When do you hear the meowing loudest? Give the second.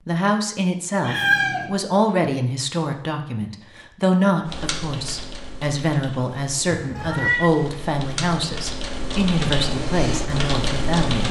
1 s.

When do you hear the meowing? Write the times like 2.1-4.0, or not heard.
1.0-1.7, 6.7-7.5.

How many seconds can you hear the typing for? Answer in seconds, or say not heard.
7 s.